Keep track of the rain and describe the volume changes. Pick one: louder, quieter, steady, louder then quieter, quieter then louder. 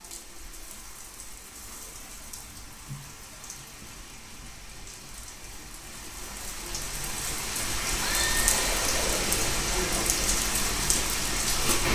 louder.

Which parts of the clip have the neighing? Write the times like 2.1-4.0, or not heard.
8.0-9.5.